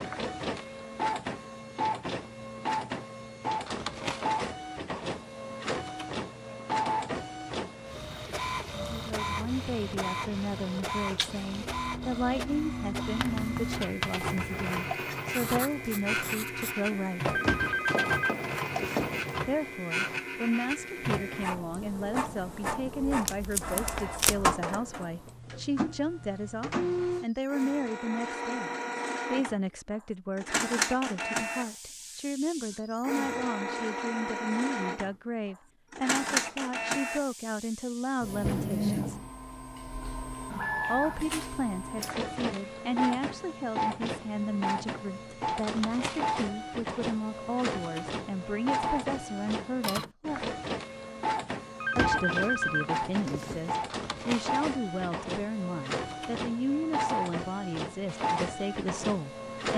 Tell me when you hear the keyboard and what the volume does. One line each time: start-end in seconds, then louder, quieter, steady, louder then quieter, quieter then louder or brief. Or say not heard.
not heard.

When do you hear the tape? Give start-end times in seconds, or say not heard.
23.1-24.6.